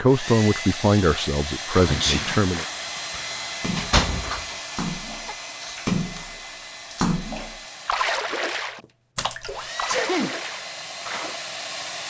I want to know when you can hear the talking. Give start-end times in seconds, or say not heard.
0.0-2.6.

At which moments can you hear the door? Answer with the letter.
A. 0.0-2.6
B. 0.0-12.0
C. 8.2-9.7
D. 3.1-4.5
D.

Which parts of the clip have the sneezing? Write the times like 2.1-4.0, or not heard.
1.9-2.5, 5.2-5.8, 9.8-10.3.